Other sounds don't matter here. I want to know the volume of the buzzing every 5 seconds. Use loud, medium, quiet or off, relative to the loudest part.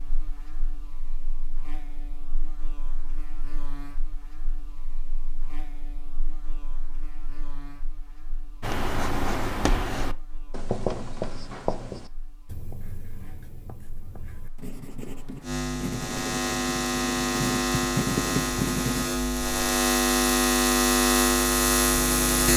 quiet, quiet, quiet, medium, loud.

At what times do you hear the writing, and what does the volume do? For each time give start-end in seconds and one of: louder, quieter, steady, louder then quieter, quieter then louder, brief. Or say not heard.
8.6-19.1 quieter then louder.